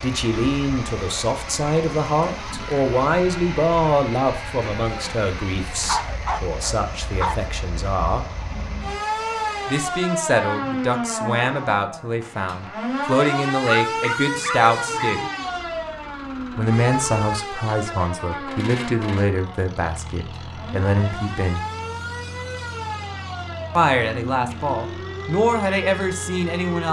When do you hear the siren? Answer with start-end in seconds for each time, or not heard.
0.0-26.8.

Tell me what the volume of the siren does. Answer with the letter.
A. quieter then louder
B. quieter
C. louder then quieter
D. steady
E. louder
C.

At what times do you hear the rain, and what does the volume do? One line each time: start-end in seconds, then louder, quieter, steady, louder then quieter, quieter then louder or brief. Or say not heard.
not heard.